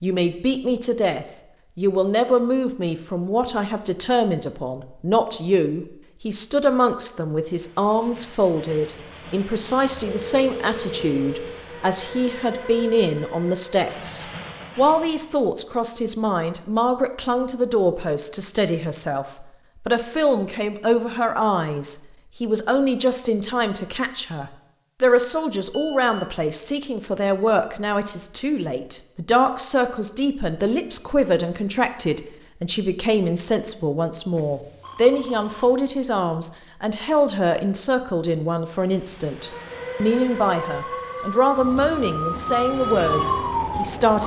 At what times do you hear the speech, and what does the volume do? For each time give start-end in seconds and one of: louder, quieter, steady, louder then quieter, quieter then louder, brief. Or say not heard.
0.0-44.2 steady.